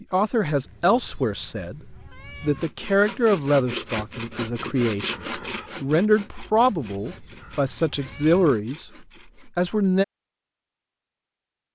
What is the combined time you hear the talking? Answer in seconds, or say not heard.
10 s.